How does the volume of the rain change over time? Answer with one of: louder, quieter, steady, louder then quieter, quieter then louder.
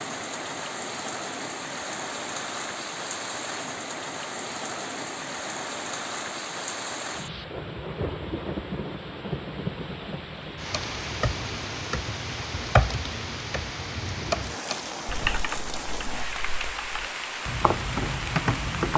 steady.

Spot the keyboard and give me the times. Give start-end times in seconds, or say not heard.
10.7-18.9.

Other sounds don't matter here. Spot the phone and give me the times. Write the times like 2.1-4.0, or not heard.
not heard.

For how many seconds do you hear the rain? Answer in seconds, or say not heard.
19 s.